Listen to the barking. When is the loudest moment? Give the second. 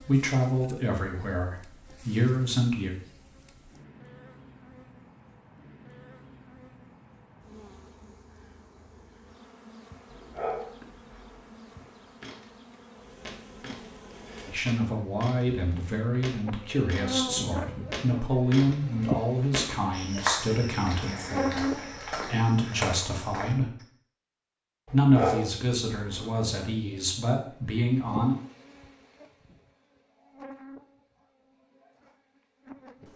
25 s.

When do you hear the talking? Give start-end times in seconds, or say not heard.
0.0-2.9, 14.4-23.8, 24.9-28.4.